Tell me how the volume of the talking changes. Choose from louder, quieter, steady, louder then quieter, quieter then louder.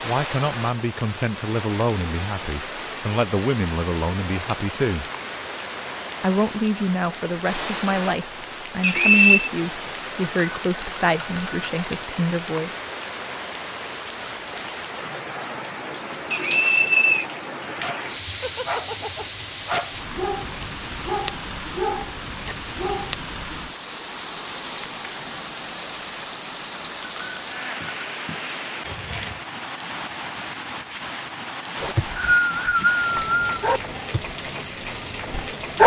steady.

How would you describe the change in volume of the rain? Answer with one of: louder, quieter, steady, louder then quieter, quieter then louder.
steady.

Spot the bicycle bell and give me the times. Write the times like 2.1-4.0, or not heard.
10.2-11.8, 27.0-28.1.